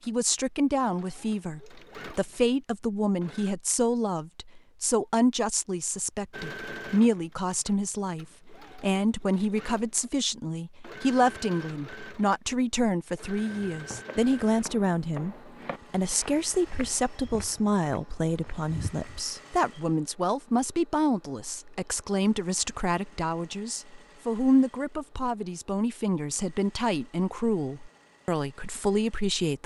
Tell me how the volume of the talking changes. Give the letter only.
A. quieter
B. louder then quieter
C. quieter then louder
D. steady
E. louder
D.